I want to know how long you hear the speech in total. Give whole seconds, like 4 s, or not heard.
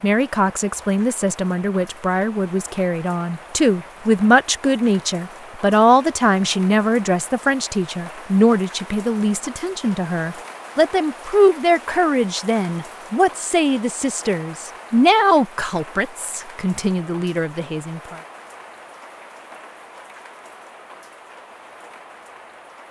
18 s.